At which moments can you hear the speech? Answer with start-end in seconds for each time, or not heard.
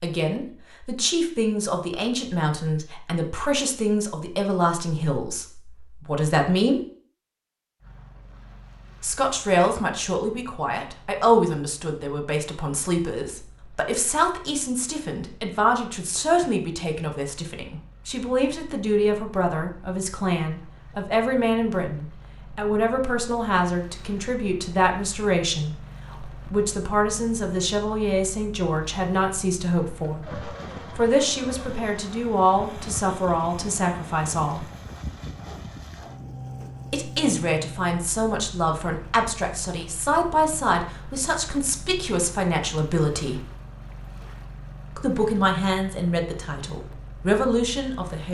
0.0-6.8, 9.0-34.6, 36.9-43.5, 45.0-48.2.